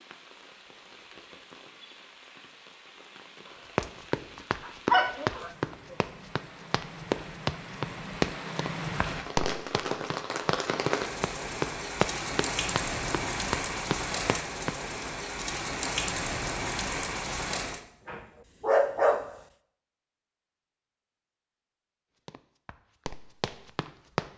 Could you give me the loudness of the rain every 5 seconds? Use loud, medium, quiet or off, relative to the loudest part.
quiet, medium, loud, loud, off.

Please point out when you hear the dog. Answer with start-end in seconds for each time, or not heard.
4.6-6.0, 17.6-19.3.